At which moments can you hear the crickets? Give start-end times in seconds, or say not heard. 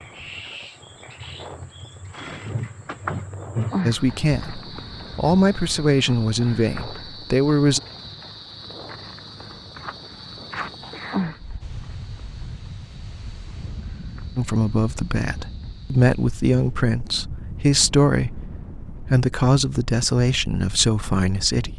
0.0-16.4.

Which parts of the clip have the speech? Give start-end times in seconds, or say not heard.
3.9-7.8, 14.3-21.7.